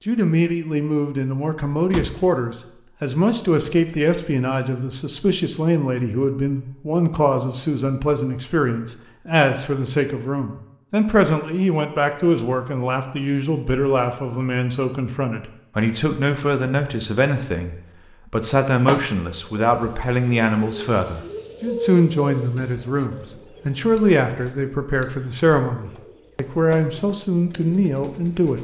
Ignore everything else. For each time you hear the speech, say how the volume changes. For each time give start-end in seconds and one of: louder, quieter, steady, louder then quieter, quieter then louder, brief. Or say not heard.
0.1-28.5 steady.